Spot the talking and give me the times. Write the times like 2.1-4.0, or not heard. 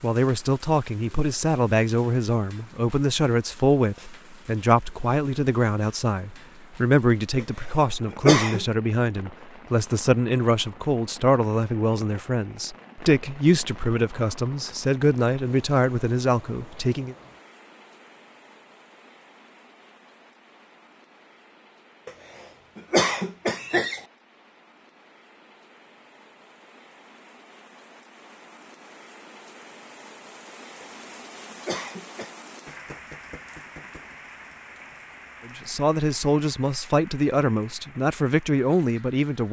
0.0-17.1, 35.5-39.4.